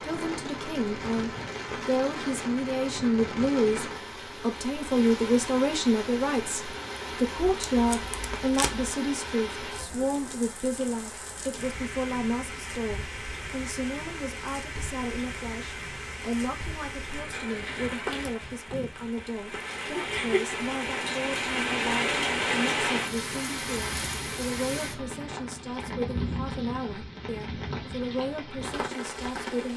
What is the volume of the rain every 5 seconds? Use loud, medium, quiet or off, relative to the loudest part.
medium, medium, medium, medium, loud, medium.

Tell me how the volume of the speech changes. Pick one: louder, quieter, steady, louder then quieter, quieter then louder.
quieter.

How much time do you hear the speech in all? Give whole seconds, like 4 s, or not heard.
30 s.